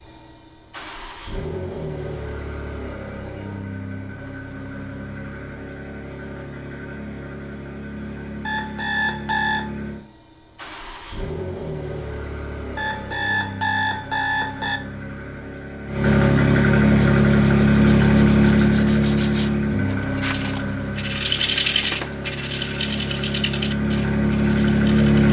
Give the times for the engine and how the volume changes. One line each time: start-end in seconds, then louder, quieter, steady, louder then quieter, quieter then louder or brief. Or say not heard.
0.0-25.2 louder then quieter.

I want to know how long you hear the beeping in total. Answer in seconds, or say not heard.
3 s.